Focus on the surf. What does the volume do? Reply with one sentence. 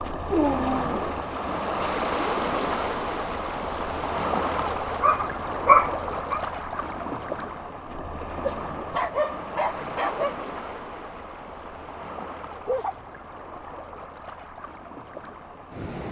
The volume of the surf goes down.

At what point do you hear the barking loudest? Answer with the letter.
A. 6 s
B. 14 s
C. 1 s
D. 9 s
A.